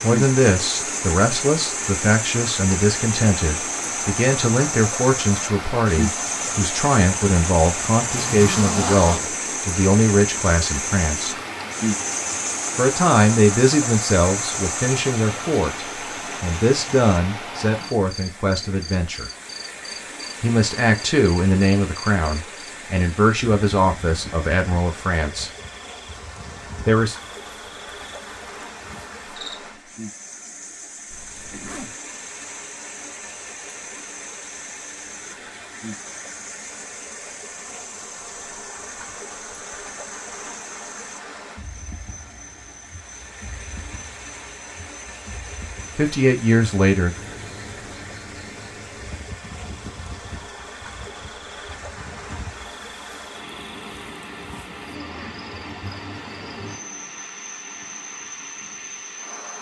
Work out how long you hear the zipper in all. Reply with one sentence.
The zipper can be heard for 2 seconds in total.